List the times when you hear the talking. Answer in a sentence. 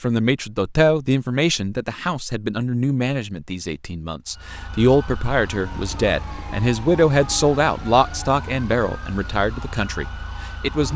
You can hear the talking from 0.0 to 10.9 s.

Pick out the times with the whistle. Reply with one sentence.
The whistle can't be heard in this clip.